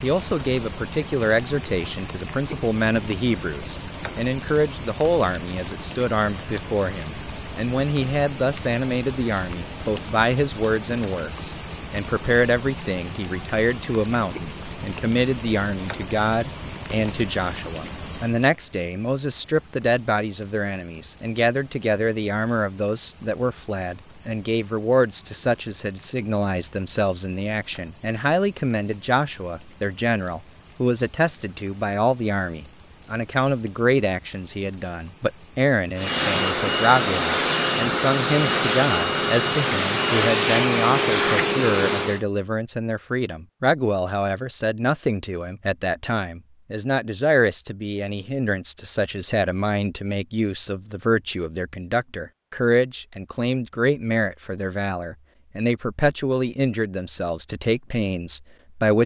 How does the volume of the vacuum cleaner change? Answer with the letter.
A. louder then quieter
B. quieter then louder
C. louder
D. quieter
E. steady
E.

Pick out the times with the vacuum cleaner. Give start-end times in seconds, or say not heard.
36.0-42.2.